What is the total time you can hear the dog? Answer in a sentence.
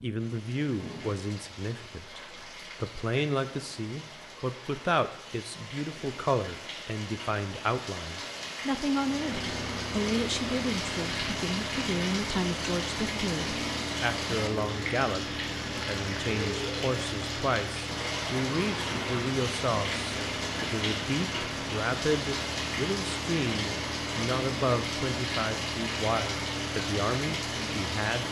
You can't hear the dog here.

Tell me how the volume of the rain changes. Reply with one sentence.
The volume of the rain goes up.